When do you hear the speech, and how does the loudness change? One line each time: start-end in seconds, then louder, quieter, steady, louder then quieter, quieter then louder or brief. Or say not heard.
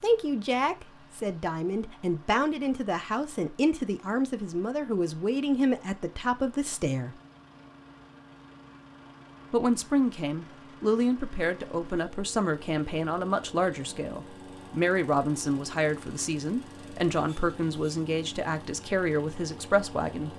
0.0-7.2 steady
9.5-20.3 steady.